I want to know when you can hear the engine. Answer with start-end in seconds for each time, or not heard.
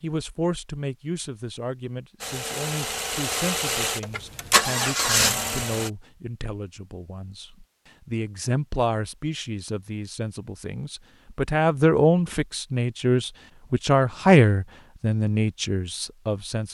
2.2-5.9.